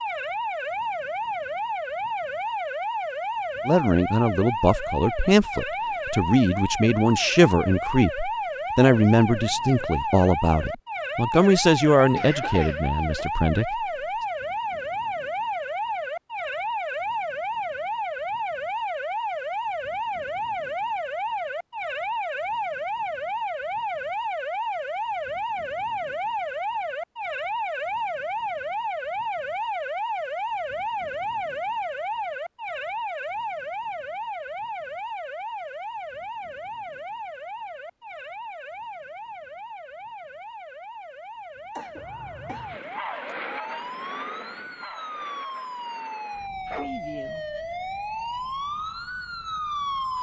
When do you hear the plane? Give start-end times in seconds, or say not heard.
42.0-50.1.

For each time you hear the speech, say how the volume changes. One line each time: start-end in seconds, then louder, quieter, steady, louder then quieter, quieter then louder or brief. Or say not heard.
3.6-13.8 steady.